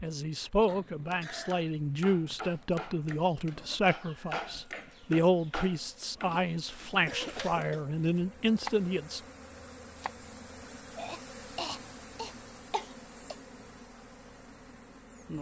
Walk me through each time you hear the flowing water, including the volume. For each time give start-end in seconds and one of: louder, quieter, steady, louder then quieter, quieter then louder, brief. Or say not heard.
not heard.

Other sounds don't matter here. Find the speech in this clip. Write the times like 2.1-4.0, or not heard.
0.0-9.2.